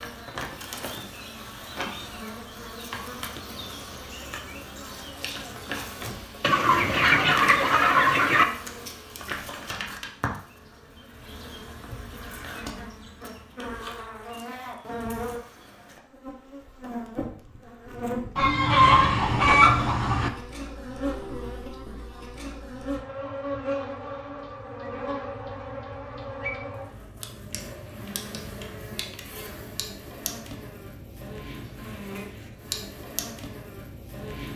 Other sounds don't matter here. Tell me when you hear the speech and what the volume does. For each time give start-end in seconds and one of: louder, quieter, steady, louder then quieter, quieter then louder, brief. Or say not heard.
not heard.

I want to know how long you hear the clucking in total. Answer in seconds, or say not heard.
4 s.